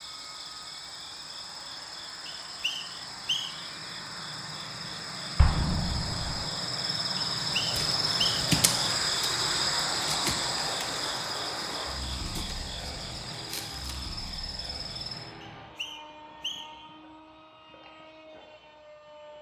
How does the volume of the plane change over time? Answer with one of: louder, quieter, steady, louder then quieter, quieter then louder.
louder then quieter.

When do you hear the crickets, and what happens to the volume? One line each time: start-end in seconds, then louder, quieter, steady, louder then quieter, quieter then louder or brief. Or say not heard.
0.0-15.3 louder then quieter.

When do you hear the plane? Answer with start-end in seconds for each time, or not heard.
0.0-19.3.